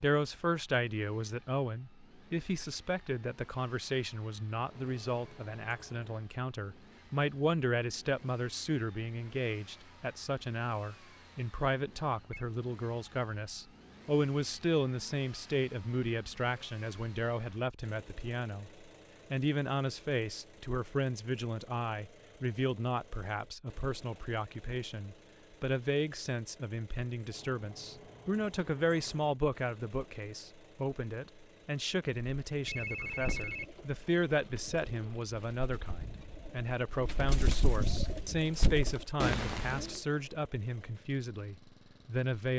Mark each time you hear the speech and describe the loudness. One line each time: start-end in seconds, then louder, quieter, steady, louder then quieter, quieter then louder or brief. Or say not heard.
0.0-42.5 steady.